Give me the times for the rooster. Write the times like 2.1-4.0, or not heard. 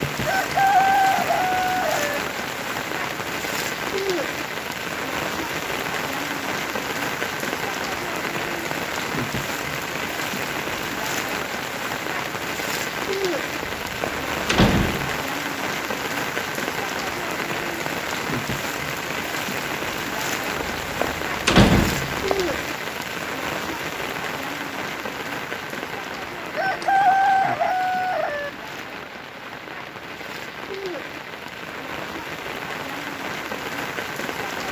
0.2-2.2, 26.6-28.5.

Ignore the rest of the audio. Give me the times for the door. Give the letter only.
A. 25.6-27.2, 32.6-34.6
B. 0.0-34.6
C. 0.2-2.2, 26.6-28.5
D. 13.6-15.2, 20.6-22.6
D.